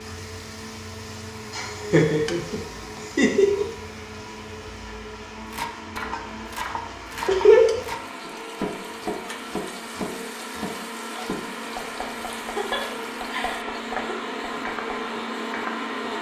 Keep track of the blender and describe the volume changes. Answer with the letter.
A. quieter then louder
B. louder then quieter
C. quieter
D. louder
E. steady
D.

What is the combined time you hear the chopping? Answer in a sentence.
The chopping can be heard for 10 seconds in total.